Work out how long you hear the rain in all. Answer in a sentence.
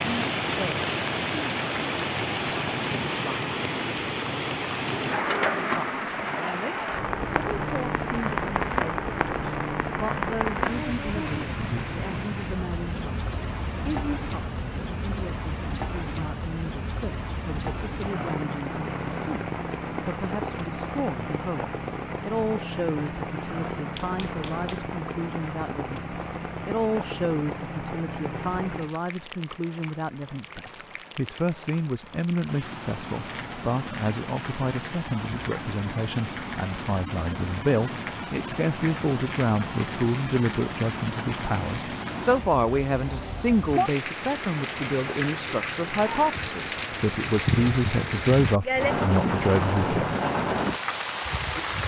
You can hear the rain for 52 seconds altogether.